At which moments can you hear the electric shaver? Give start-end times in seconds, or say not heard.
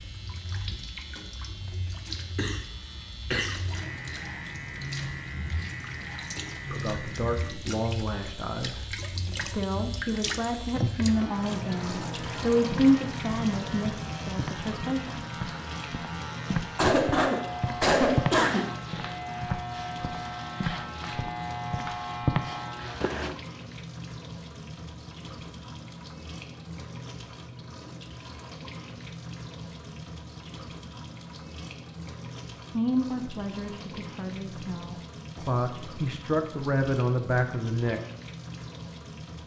0.0-23.1.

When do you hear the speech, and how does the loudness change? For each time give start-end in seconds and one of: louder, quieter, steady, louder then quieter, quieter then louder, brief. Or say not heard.
6.7-15.2 louder then quieter
32.7-38.0 louder.